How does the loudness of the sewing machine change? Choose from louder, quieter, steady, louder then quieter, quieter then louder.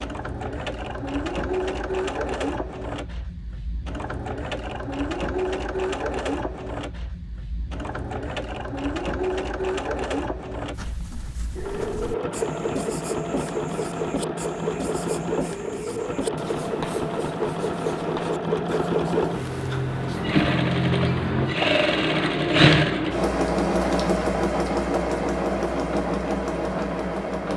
louder.